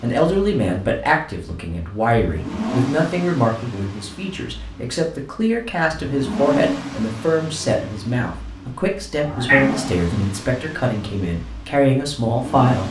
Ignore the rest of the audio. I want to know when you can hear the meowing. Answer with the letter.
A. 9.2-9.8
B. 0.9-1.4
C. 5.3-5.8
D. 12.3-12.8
A.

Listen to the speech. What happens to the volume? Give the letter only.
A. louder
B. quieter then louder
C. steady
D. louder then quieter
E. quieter
C.